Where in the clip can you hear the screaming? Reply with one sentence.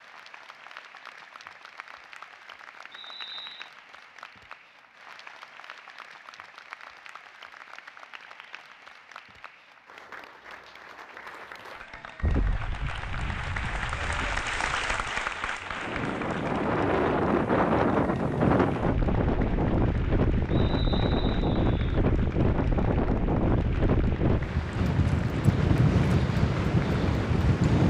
You can't hear the screaming here.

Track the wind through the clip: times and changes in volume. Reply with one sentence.
The wind can be heard from 12.2 to 27.8 s, getting louder.